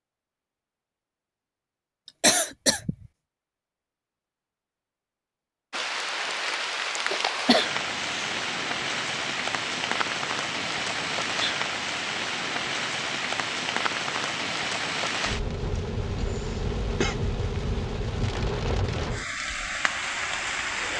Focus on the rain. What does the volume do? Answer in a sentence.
The loudness of the rain stays about the same.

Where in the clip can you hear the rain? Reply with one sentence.
You can hear the rain from 5.7 to 20.9 s.